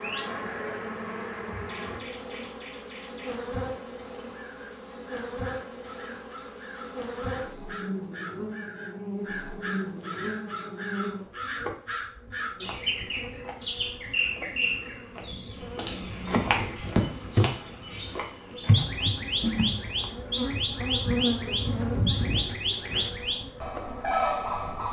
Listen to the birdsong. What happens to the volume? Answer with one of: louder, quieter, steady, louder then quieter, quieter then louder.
louder.